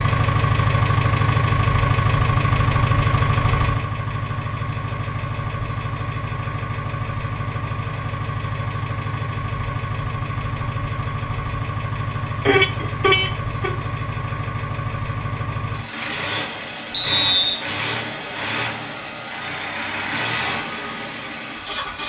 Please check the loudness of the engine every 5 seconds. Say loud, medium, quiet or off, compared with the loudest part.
loud, medium, medium, medium, medium.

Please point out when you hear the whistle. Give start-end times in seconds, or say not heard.
16.9-17.6.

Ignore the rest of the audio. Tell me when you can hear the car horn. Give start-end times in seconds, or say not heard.
12.4-13.8.